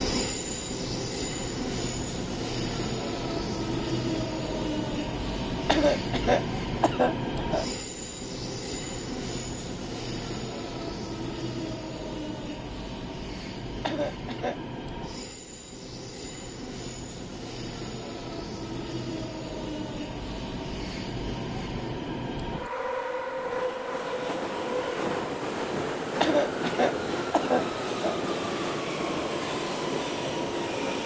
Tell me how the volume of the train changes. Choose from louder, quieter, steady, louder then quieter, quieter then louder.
quieter then louder.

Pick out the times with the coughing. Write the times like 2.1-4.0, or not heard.
5.7-7.7, 13.8-14.6, 26.2-28.1.